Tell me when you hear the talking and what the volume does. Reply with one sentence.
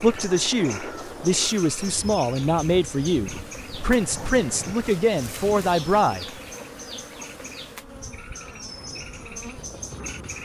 You can hear the talking from 0.0 to 6.2 s, at a steady volume.